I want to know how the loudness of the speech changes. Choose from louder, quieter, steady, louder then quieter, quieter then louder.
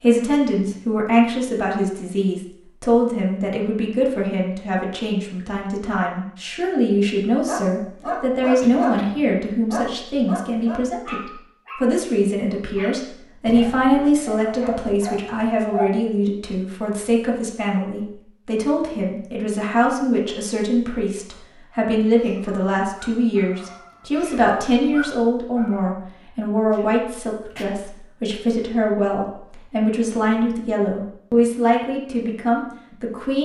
steady.